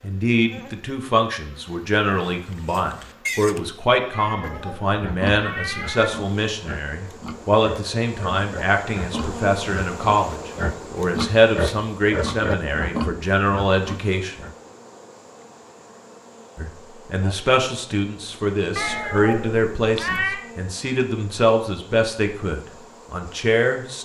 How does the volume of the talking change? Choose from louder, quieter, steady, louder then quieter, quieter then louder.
steady.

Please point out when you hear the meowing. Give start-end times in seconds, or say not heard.
4.1-6.1, 18.8-20.4.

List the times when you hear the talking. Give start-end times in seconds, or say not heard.
0.0-14.4, 16.6-24.0.